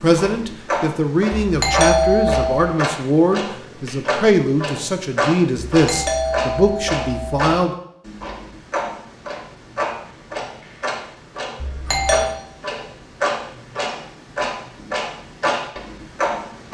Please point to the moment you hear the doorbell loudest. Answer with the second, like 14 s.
2 s.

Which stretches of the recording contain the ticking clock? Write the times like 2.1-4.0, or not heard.
0.0-16.6.